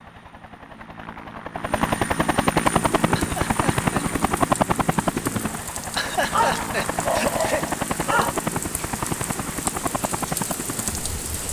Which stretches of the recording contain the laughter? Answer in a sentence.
You can hear the laughter from 3.1 to 3.9 s and from 5.9 to 7.7 s.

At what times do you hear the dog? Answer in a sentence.
The dog can be heard from 6.3 to 8.3 s.